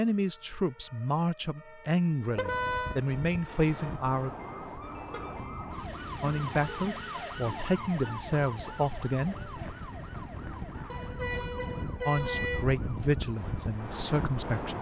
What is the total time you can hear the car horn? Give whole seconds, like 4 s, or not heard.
4 s.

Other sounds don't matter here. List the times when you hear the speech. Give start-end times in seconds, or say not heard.
0.0-4.3, 6.2-9.4, 12.1-14.7.